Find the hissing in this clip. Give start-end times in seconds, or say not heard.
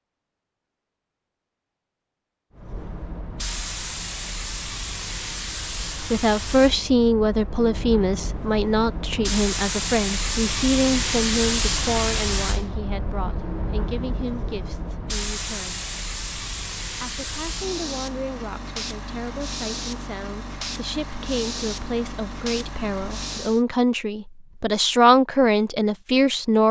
2.5-23.6.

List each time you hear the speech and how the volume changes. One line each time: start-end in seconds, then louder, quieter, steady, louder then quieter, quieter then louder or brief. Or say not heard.
5.8-15.8 quieter
17.0-26.6 louder.